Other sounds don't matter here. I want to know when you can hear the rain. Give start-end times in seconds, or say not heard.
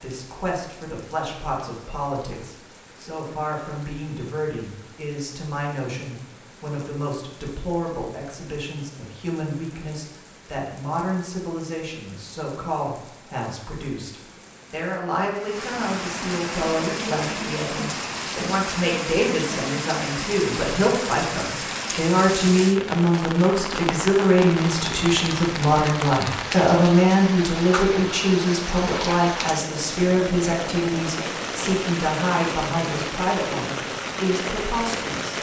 0.0-35.3.